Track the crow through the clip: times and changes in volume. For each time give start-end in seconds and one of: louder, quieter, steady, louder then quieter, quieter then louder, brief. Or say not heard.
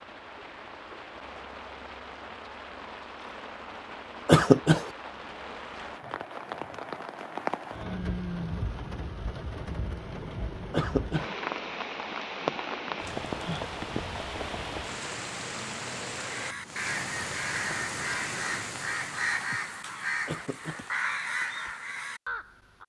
16.1-22.8 steady.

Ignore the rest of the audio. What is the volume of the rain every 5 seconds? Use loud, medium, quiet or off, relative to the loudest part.
medium, loud, loud, loud, off.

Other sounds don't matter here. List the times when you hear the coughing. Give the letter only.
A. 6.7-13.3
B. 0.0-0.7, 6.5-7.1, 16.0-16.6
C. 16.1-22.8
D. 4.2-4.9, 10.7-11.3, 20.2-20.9
D.